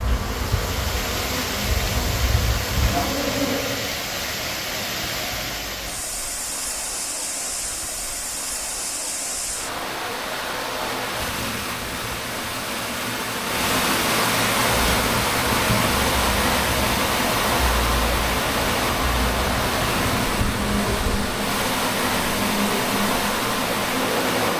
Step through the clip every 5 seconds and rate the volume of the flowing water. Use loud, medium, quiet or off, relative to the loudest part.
medium, medium, loud, loud, loud.